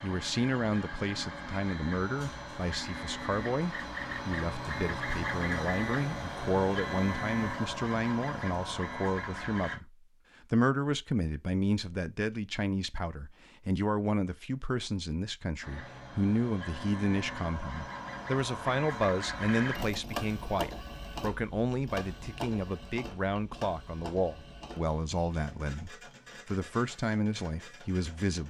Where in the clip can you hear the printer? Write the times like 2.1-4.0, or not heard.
0.0-9.8, 15.6-28.4.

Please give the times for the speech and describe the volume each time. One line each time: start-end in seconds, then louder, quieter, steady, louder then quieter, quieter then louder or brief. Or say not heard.
0.0-28.4 steady.